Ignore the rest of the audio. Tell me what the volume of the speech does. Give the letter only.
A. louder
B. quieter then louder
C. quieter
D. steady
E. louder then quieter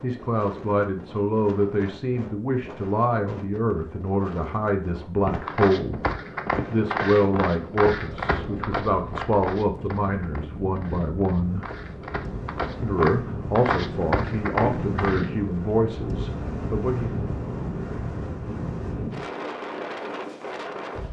D.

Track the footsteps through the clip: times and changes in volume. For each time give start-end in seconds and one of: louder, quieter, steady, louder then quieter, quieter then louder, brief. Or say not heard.
5.2-15.3 quieter then louder.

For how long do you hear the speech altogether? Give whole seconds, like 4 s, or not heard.
15 s.